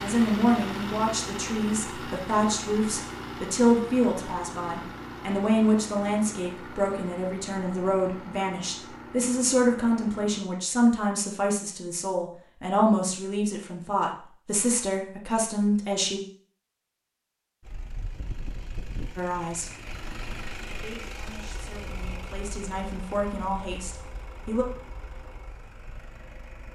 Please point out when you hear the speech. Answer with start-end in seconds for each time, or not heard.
0.0-16.2, 19.1-19.7, 20.7-24.6.